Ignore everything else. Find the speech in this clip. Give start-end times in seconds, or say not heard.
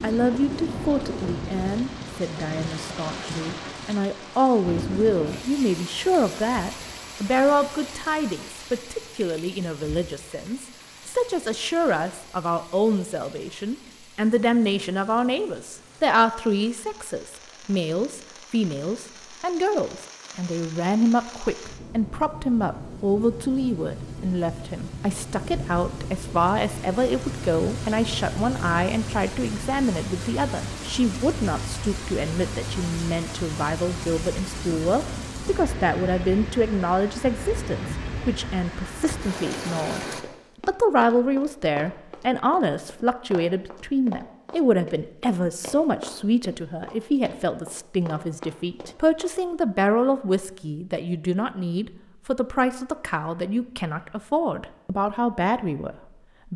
0.0-40.0, 40.6-56.5.